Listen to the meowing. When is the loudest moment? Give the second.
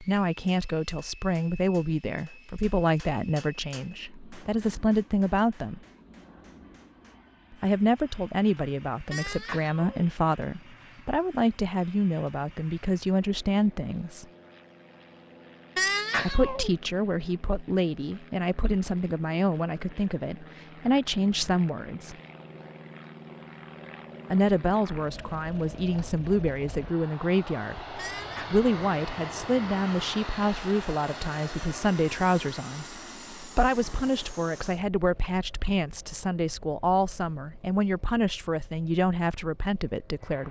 16 s.